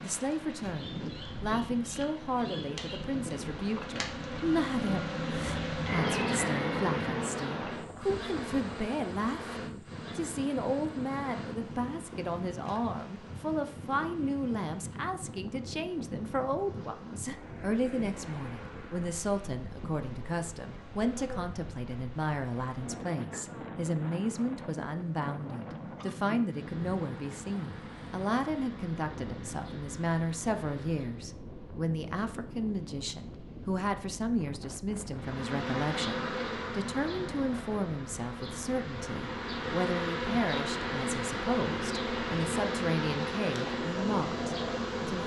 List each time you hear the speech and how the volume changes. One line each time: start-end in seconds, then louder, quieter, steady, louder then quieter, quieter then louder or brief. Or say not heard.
0.0-45.2 steady.